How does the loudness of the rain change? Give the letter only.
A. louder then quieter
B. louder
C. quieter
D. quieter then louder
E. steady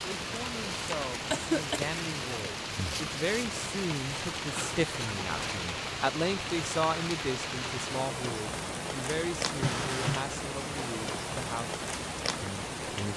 E.